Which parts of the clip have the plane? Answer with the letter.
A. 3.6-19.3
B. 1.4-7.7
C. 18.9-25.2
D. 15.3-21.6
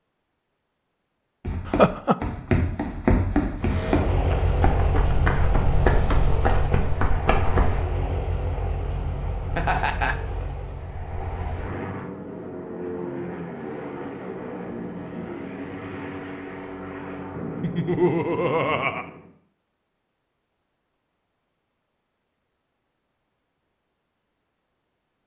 A.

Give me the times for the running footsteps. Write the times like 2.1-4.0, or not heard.
1.4-7.7.